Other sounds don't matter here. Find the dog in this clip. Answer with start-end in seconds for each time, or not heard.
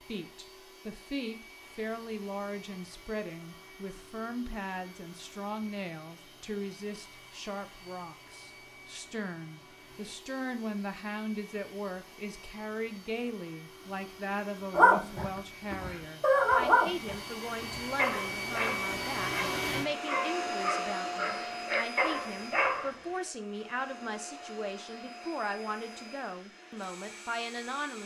14.8-22.9.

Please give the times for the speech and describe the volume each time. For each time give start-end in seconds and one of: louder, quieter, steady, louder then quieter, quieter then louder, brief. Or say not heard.
0.1-28.0 steady.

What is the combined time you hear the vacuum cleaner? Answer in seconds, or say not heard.
28 s.